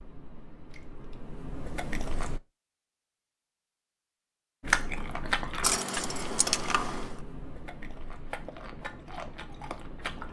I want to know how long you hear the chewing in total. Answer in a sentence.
The chewing can be heard for 8 seconds in total.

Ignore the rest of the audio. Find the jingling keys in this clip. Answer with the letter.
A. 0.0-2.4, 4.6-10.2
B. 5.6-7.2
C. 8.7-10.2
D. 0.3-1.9
B.